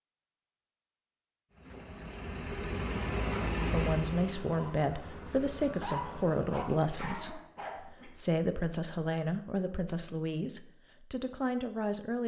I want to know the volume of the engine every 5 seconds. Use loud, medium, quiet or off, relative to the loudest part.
loud, medium, off.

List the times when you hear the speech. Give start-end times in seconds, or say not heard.
3.7-12.2.